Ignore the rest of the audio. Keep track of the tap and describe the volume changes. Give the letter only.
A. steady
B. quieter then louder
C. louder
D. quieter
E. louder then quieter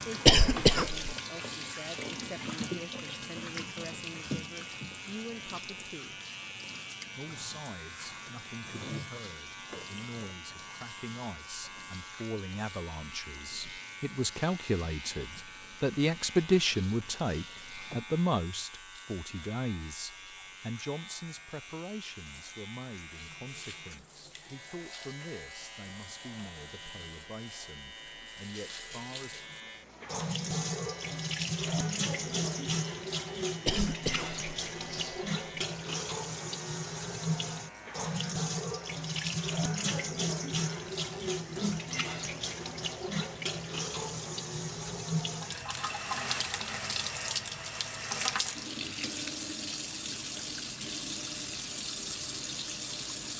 B.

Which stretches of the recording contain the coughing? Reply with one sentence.
You can hear the coughing from 0.2 to 1.0 s and from 33.6 to 35.2 s.